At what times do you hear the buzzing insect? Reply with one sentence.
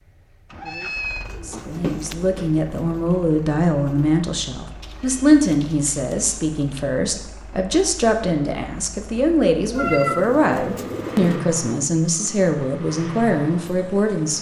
The buzzing insect can't be heard in this clip.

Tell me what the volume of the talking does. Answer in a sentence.
The loudness of the talking stays about the same.